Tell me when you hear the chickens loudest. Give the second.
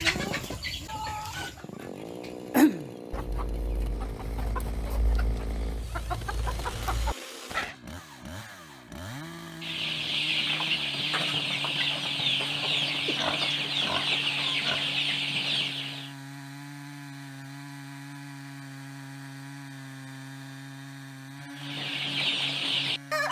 3 s.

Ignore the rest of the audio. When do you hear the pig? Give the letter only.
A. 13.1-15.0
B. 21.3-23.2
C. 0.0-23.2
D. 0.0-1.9
A.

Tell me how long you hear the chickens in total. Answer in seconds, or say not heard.
16 s.